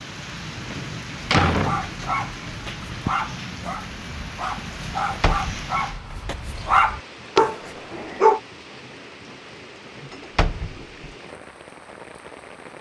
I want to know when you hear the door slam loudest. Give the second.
1 s.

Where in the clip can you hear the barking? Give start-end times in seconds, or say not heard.
1.2-8.4.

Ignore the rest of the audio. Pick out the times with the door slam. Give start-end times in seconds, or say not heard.
0.7-1.8, 5.0-5.7, 10.1-11.1.